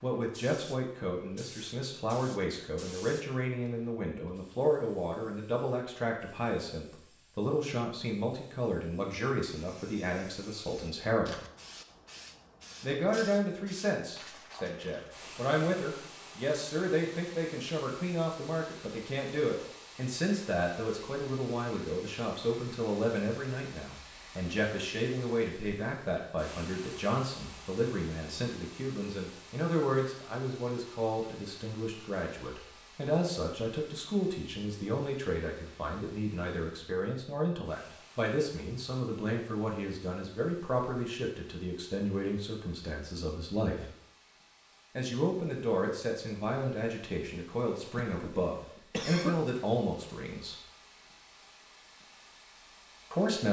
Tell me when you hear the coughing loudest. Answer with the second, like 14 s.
49 s.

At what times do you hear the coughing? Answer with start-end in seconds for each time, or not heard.
47.9-49.4.